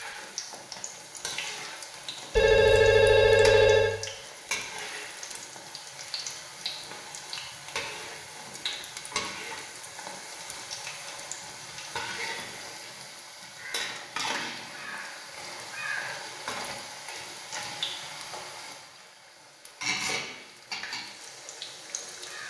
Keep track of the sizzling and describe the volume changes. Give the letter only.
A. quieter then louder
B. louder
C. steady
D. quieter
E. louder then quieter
C.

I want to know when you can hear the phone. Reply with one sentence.
The phone can be heard from 2.4 to 4.0 s.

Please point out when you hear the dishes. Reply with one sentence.
You can't hear the dishes here.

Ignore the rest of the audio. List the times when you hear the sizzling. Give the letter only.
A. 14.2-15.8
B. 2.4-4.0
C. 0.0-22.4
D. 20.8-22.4
C.